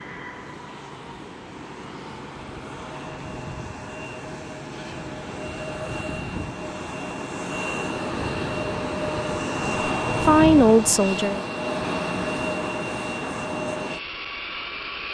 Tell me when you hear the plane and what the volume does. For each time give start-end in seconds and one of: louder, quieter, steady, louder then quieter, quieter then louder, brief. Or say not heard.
0.0-15.1 louder.